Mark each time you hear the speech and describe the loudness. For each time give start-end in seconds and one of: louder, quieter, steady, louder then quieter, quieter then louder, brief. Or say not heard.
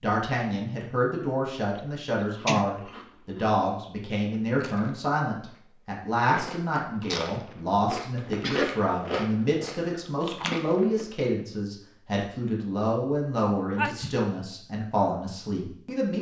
0.0-16.1 steady.